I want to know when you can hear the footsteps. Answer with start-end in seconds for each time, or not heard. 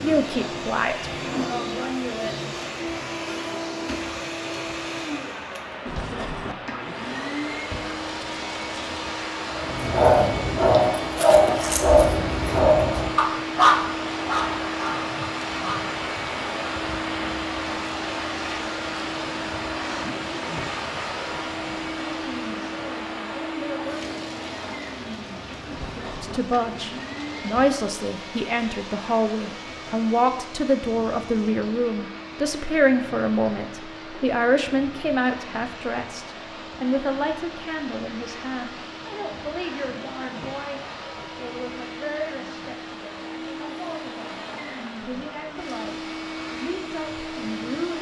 not heard.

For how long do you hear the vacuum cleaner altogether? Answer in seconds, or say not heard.
48 s.